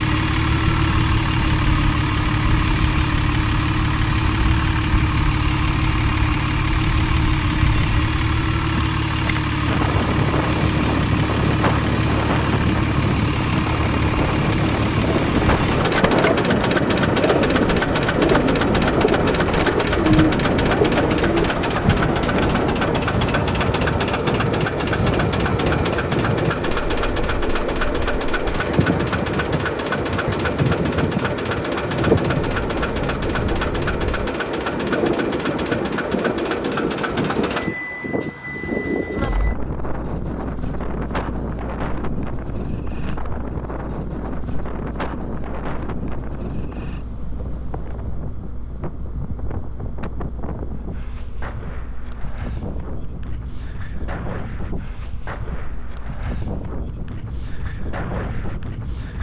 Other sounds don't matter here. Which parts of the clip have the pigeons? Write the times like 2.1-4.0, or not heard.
14.3-22.7.